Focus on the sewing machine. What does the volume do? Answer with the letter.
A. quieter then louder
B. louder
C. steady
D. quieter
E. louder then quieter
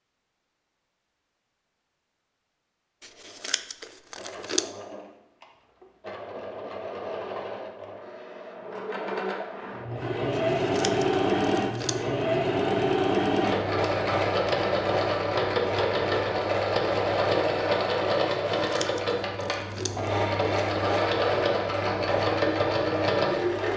B.